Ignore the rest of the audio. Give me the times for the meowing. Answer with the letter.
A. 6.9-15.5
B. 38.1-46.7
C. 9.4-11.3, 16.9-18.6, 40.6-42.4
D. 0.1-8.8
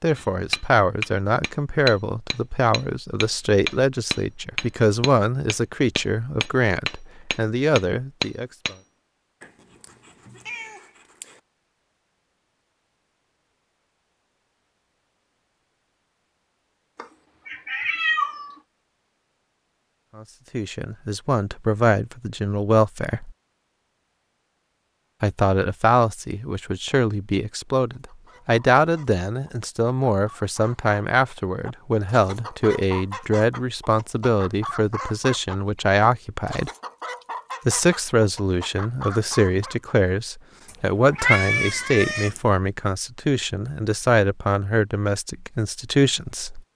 C.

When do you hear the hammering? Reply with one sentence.
You can hear the hammering from 0.1 to 8.8 s.